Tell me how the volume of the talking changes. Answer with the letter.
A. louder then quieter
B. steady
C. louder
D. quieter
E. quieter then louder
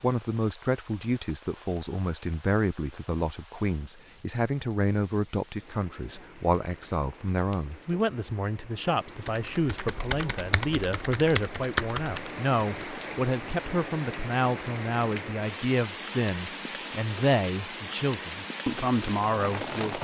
B.